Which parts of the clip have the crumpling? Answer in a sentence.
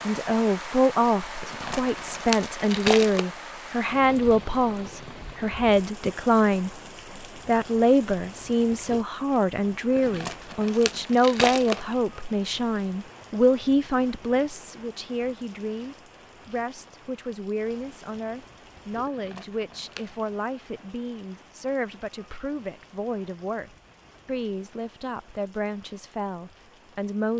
The crumpling can be heard from 1.4 to 3.2 s, from 9.9 to 11.9 s and from 19.1 to 20.1 s.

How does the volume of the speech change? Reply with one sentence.
The volume of the speech goes down.